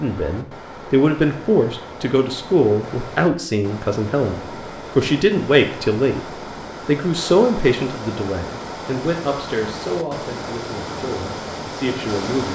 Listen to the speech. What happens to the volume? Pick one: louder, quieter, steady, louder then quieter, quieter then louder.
quieter.